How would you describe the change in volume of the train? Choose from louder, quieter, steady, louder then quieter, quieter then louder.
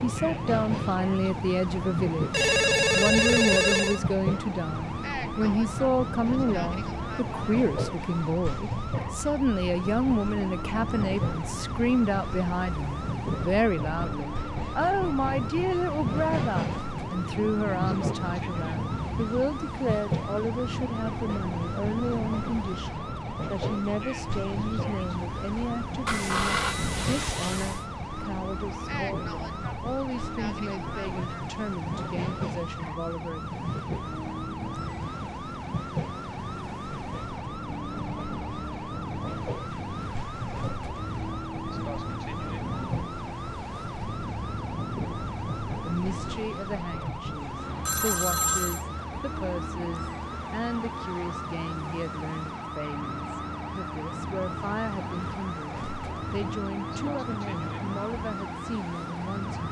quieter.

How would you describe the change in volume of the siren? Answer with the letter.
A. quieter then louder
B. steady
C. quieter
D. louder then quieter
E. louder
B.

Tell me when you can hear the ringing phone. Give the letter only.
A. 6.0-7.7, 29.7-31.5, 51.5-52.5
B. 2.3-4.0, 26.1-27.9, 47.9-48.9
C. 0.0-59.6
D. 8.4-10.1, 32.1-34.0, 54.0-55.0
B.